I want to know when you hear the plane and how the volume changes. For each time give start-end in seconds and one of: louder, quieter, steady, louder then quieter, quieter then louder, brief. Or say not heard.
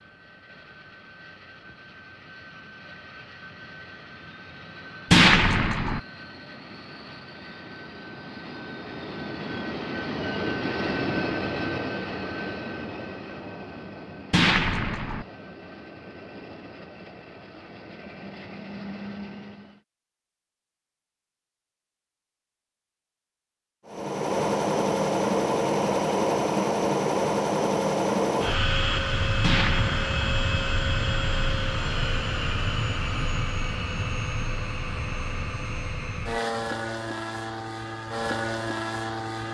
0.0-19.8 louder then quieter
23.9-39.5 quieter.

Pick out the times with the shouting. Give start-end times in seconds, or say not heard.
not heard.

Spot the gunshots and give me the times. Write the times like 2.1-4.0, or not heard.
5.1-6.0, 14.3-15.2, 29.4-30.4.